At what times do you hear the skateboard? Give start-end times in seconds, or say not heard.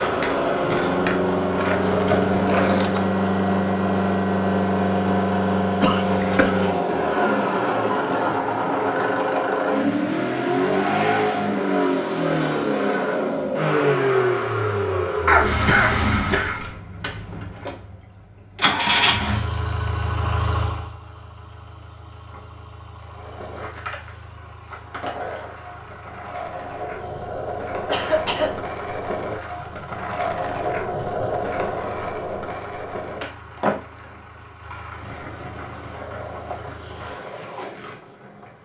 0.0-3.2, 22.9-38.5.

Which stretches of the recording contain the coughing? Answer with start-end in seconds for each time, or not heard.
5.8-6.5, 15.2-16.6, 27.9-28.6.